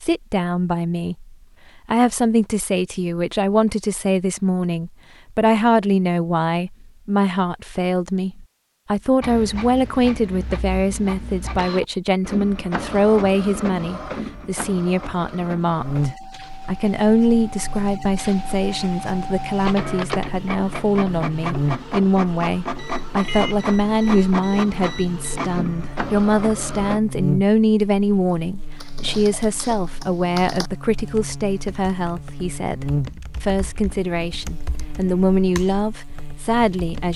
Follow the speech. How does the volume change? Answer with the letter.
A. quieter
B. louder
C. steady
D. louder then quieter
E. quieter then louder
C.